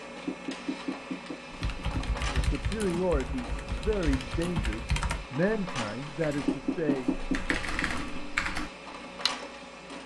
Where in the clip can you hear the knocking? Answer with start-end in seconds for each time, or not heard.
0.2-2.0, 6.5-8.2.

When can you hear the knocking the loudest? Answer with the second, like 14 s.
7 s.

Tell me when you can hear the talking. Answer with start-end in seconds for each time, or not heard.
2.3-7.1.